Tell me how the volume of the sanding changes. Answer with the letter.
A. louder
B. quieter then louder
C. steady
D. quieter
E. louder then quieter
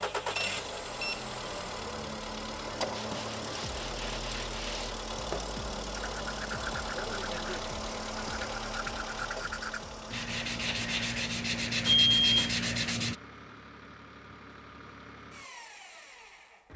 A.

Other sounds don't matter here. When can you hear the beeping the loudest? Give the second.
12 s.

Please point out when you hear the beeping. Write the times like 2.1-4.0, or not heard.
0.3-1.2, 11.8-12.6.